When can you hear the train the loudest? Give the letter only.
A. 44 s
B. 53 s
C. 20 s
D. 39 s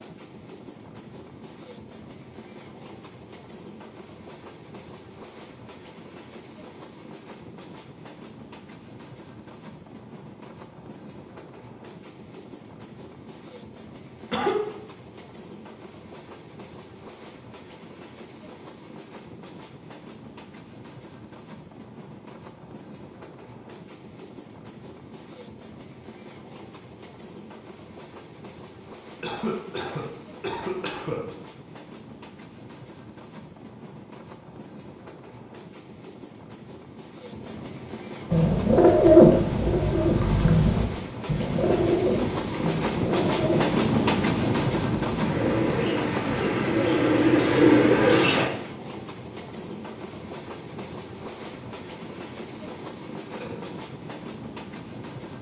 A.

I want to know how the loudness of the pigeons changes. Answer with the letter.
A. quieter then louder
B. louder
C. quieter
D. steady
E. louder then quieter
A.